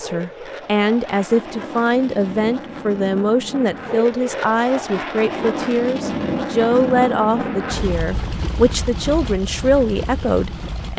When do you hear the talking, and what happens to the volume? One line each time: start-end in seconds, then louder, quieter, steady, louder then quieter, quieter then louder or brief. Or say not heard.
0.0-10.9 steady.